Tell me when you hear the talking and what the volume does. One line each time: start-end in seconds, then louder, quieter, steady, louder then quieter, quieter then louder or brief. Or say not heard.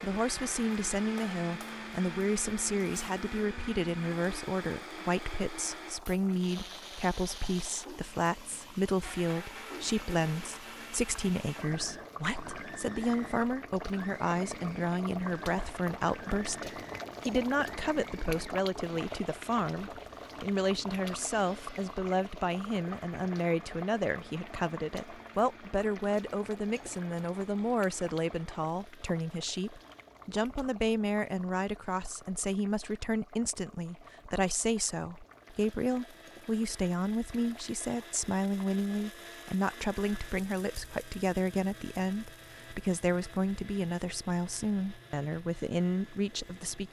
0.0-46.8 steady.